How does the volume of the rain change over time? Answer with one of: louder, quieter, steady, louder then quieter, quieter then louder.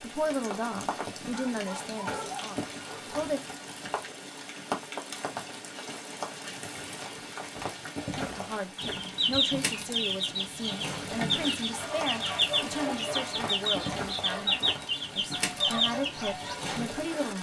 steady.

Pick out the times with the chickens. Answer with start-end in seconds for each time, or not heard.
8.8-16.9.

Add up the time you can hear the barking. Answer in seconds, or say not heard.
2 s.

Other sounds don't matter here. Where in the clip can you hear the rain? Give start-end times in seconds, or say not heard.
0.0-17.3.